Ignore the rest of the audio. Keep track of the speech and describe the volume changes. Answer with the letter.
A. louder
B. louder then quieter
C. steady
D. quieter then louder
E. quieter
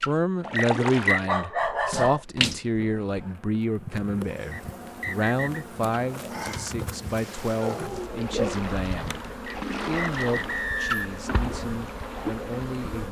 E.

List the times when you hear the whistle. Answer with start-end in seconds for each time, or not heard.
0.6-1.2, 4.5-5.7, 9.4-11.2.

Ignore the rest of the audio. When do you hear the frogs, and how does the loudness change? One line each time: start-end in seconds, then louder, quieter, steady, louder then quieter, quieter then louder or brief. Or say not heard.
not heard.